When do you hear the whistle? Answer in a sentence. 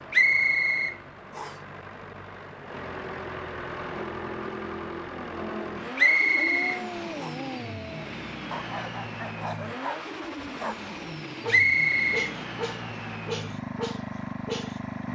You can hear the whistle from 0.1 to 1.6 s, from 6.0 to 7.3 s and from 11.4 to 12.3 s.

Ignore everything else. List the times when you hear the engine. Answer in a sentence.
The engine can be heard from 0.0 to 15.1 s.